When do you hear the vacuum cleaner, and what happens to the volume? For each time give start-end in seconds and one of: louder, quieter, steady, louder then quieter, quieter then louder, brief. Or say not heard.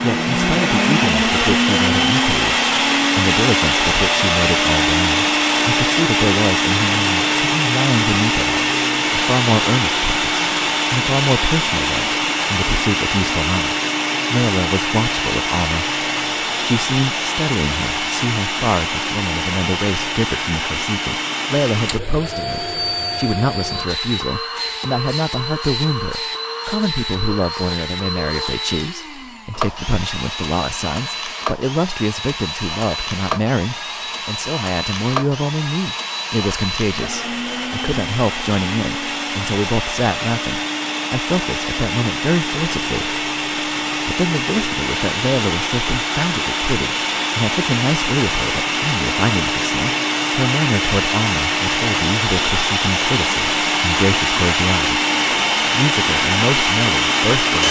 0.0-57.6 quieter then louder.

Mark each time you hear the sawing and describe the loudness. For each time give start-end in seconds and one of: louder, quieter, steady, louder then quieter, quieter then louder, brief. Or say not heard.
not heard.